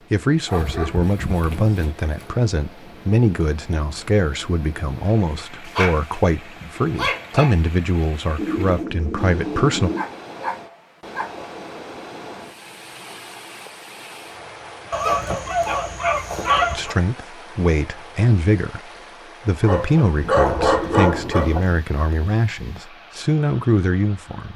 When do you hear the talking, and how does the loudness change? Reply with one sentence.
You can hear the talking from 0.1 to 9.9 s, at a steady volume; and from 16.7 to 24.5 s, at a steady volume.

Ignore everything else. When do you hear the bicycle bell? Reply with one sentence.
The bicycle bell can't be heard in this clip.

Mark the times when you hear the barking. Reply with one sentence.
You can hear the barking from 0.5 to 2.3 s, from 5.7 to 7.6 s, from 9.9 to 11.4 s, from 14.9 to 16.9 s and from 19.6 to 21.6 s.